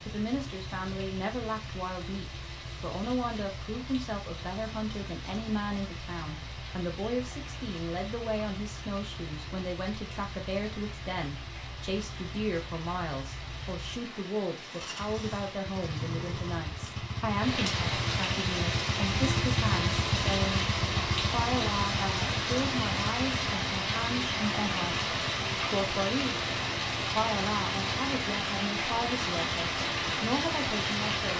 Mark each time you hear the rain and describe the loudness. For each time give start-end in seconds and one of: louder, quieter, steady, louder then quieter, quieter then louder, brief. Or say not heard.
0.0-31.3 louder.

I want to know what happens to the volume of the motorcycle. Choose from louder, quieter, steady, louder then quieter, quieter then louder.
louder then quieter.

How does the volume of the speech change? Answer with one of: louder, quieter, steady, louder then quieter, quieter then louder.
steady.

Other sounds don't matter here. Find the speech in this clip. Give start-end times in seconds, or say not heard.
0.0-26.4, 27.1-31.3.